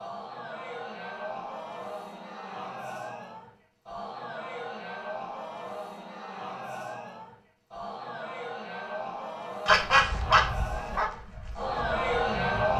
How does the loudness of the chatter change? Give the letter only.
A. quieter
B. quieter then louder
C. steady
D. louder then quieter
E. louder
E.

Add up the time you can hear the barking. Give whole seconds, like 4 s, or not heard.
3 s.